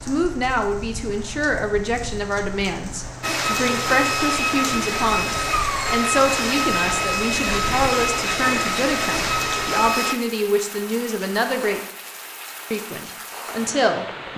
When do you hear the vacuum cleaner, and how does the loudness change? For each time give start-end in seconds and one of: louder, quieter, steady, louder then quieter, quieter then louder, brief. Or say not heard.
3.2-10.2 steady.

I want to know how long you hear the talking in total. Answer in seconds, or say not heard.
13 s.